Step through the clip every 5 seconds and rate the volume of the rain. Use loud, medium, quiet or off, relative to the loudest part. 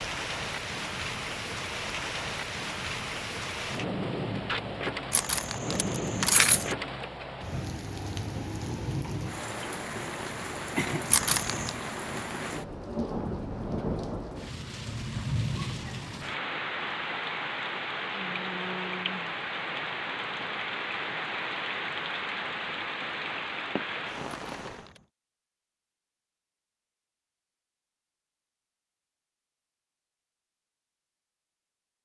loud, loud, loud, loud, loud, off, off.